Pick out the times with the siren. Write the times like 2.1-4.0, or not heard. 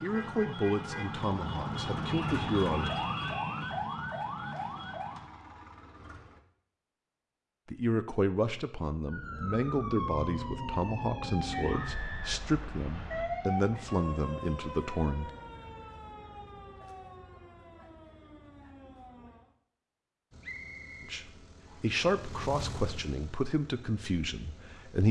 0.0-5.3, 9.1-19.6.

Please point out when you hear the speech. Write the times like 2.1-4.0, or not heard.
0.0-2.9, 7.7-15.3, 21.0-25.0.